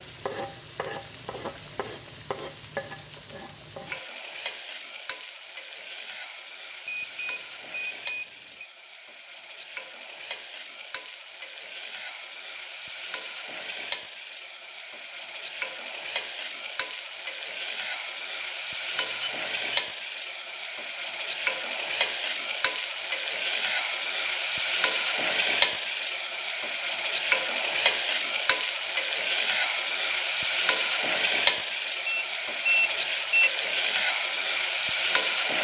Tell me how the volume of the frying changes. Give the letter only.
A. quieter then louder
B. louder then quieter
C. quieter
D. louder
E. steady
D.